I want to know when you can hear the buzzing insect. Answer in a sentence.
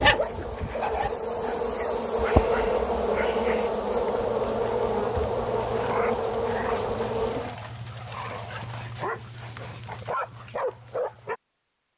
You can hear the buzzing insect from 0.0 to 7.5 s.